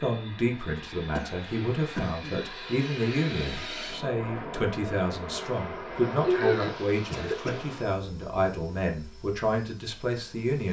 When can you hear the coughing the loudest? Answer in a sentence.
The loudest moment of the coughing is at 6 seconds.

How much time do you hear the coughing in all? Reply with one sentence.
The coughing can be heard for 3 seconds in total.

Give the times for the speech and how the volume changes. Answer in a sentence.
You can hear the speech from 0.0 to 10.6 s, at a steady volume.